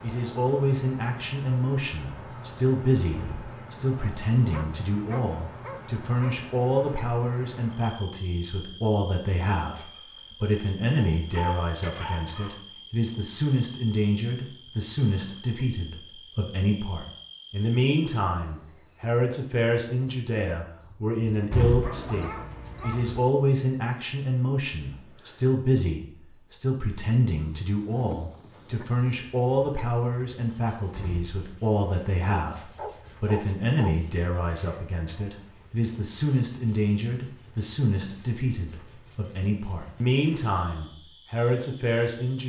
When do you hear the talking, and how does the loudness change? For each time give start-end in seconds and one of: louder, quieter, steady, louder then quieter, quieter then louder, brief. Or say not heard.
0.0-42.4 steady.